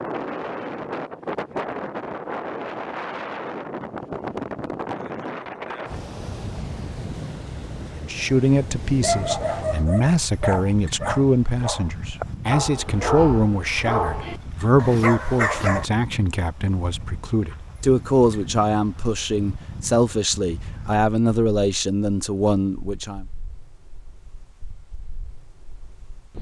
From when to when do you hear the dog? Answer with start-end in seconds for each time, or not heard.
9.0-15.8.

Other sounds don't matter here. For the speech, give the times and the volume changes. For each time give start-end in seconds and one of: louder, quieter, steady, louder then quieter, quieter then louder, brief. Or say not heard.
8.0-23.2 steady.